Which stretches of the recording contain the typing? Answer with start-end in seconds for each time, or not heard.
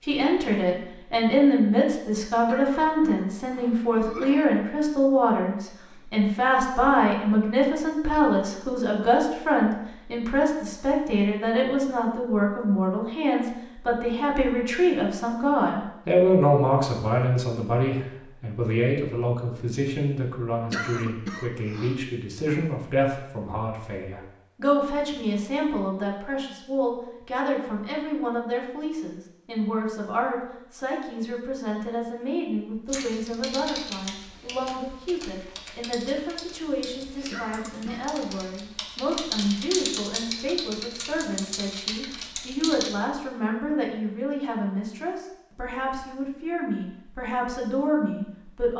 32.9-43.0.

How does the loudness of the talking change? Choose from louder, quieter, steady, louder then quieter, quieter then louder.
quieter.